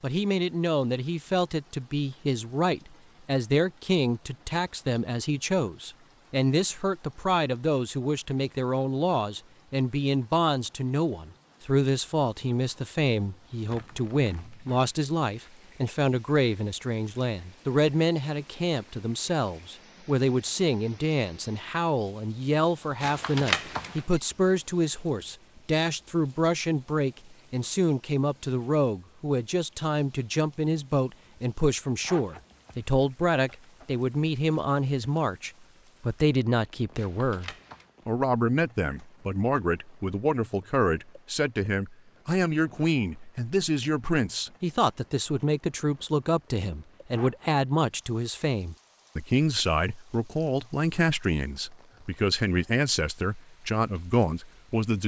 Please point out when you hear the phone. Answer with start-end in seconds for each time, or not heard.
23.0-24.1, 37.0-37.9.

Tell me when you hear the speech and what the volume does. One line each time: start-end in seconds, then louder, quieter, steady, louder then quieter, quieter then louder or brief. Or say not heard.
0.0-55.0 steady.